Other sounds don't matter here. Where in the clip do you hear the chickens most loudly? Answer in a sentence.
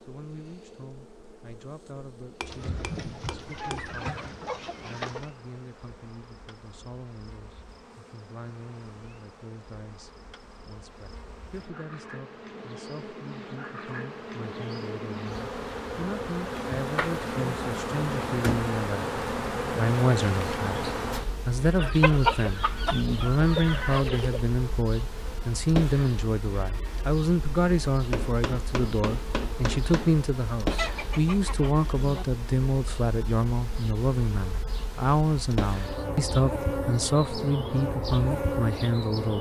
The volume of the chickens peaks at 22 seconds.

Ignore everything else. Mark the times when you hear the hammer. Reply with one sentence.
You can hear the hammer from 2.4 to 3.9 s and from 28.1 to 30.1 s.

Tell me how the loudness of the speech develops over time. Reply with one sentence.
The volume of the speech goes up.